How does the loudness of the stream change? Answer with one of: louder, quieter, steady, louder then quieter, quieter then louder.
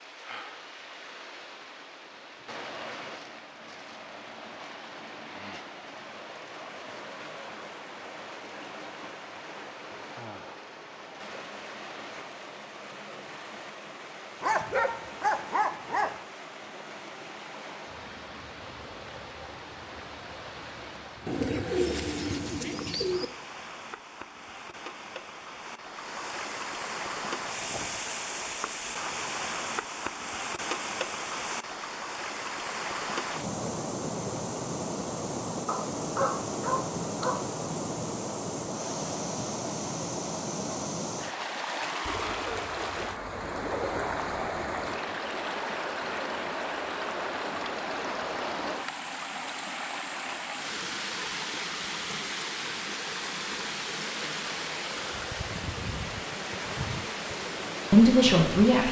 louder.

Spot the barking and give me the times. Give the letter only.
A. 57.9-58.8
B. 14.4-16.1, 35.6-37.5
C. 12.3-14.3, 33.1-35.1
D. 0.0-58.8
B.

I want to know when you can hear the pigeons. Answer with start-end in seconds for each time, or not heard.
21.2-23.2, 42.0-44.0.